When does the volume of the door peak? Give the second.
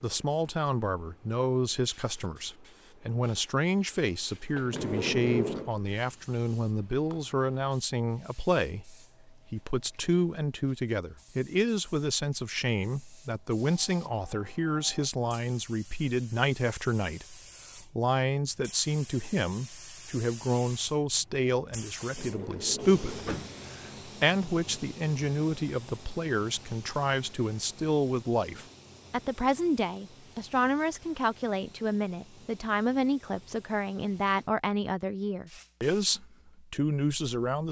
5 s.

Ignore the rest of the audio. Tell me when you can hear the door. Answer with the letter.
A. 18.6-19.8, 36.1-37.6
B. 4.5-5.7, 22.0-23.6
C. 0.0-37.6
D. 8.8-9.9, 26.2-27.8
B.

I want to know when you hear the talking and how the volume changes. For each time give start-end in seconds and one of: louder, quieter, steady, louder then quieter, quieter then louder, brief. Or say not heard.
0.0-37.6 steady.